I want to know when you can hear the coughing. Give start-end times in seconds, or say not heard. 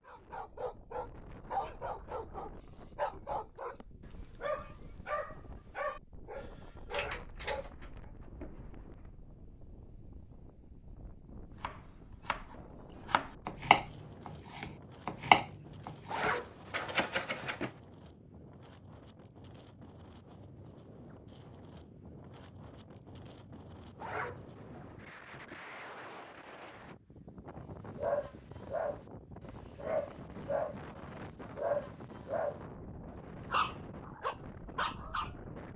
not heard.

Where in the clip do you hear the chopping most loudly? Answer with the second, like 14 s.
15 s.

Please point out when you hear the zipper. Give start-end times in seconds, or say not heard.
6.8-9.1, 16.1-17.7, 24.0-25.6.